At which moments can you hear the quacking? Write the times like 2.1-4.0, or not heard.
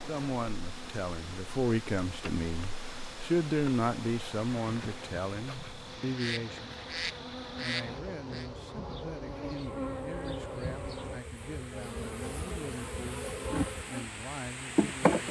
5.5-8.5.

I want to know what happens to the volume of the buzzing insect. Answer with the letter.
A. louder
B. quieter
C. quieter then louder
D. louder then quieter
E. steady
A.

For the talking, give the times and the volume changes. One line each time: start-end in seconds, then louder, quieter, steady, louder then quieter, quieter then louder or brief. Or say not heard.
0.1-6.9 louder then quieter
7.5-15.2 steady.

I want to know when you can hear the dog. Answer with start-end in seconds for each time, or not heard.
not heard.